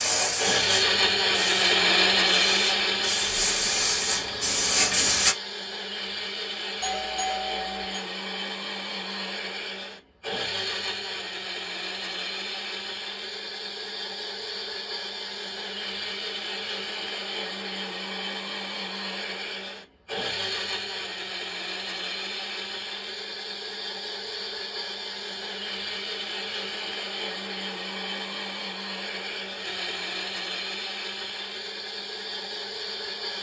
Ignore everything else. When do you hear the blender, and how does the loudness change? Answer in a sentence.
You can hear the blender from 0.3 to 33.3 s, getting quieter.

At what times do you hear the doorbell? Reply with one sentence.
You can hear the doorbell from 6.8 to 8.0 s.